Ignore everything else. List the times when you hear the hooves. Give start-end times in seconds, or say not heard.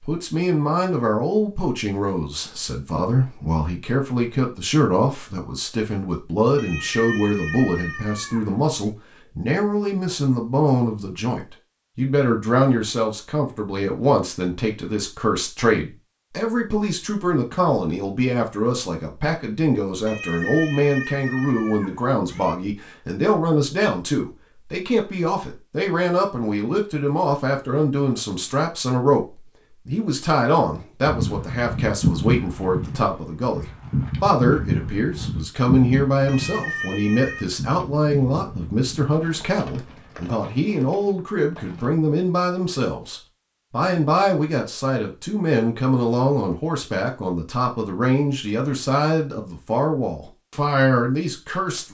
31.1-41.9.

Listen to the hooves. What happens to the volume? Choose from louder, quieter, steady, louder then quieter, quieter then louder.
quieter.